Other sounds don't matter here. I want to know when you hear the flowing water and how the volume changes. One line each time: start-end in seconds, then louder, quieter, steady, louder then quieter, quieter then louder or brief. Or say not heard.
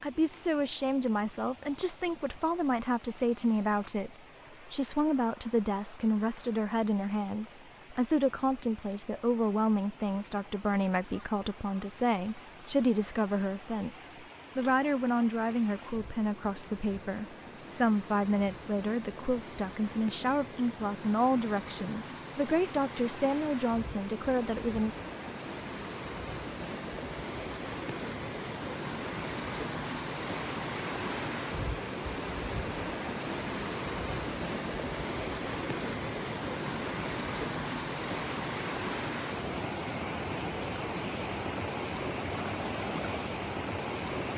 0.0-44.3 louder.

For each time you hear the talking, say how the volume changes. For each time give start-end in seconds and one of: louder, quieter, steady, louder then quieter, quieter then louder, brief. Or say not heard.
0.0-24.9 steady.